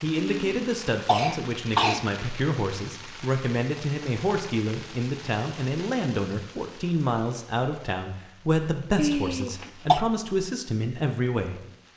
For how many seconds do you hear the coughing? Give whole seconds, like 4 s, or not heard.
3 s.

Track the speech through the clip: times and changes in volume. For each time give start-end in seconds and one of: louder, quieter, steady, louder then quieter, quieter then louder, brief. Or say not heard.
0.0-11.9 steady.